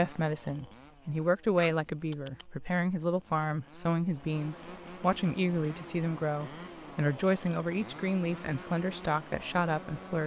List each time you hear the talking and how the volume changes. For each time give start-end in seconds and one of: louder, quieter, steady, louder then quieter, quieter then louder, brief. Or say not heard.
0.0-10.2 steady.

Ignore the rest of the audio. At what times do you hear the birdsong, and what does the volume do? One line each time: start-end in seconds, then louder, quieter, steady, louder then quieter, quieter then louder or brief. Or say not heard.
not heard.